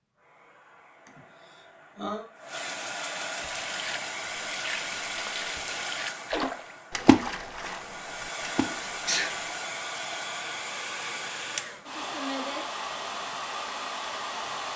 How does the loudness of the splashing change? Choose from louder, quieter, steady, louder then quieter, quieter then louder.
louder then quieter.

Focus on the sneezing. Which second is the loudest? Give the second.
9 s.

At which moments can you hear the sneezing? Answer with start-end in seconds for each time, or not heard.
1.1-2.2, 8.6-9.3.